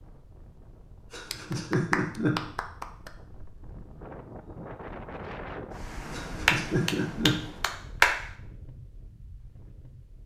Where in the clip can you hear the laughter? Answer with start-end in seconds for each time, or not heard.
1.1-2.4, 6.1-7.3.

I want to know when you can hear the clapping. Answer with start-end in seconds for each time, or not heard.
1.3-3.1, 6.5-8.2.